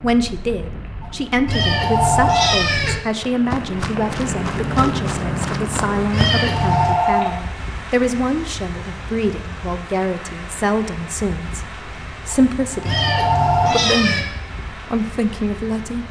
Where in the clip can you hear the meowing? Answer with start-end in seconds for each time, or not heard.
1.4-3.0, 6.1-7.0, 12.8-14.2.